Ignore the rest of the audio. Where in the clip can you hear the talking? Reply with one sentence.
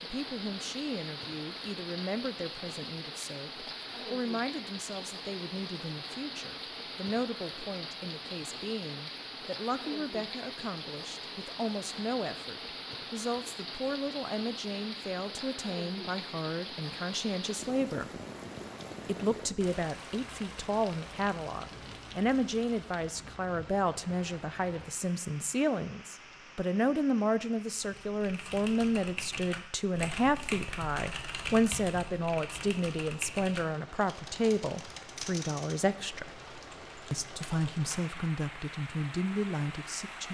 The talking can be heard from 0.0 to 18.1 s, from 19.1 to 36.3 s and from 37.1 to 40.2 s.